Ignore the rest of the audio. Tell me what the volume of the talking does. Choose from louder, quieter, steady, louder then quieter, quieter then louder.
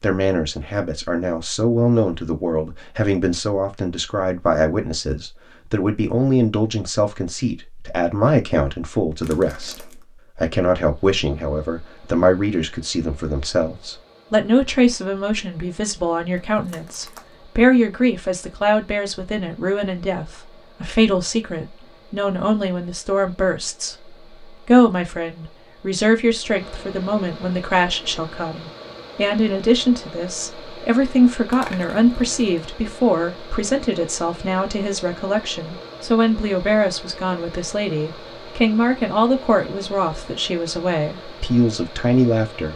steady.